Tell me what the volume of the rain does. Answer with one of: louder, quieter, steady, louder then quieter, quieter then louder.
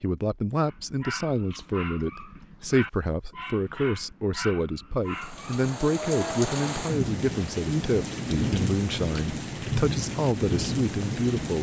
steady.